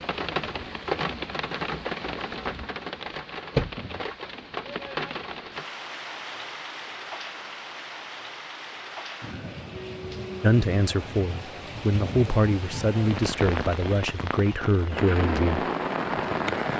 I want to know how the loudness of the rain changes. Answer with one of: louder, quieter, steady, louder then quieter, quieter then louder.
quieter then louder.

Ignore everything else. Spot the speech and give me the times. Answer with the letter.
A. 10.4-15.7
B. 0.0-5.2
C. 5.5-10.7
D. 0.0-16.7
A.